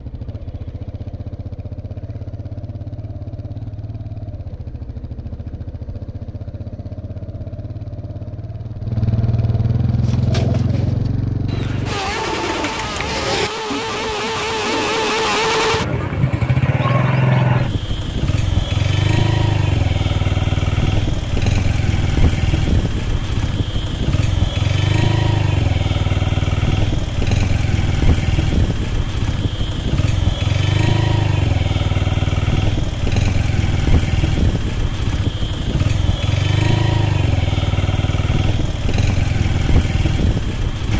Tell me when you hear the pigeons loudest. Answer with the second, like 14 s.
13 s.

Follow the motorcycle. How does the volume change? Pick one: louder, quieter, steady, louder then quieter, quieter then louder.
louder.